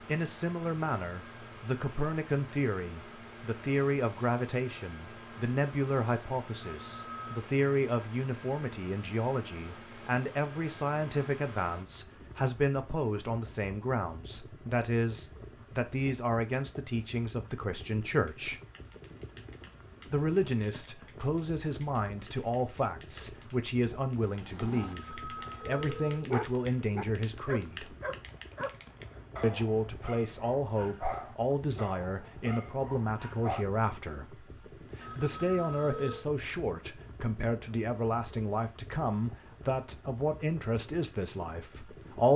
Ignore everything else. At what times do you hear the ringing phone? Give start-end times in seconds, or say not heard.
6.7-7.5, 24.8-26.3, 35.0-36.2.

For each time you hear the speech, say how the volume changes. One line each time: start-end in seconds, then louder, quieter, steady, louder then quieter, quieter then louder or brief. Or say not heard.
0.1-18.6 steady
20.1-27.9 steady
29.4-42.3 steady.